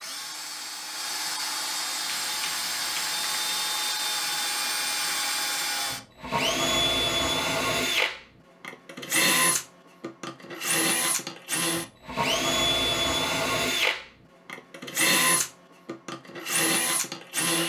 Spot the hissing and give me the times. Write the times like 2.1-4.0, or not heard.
1.9-3.6.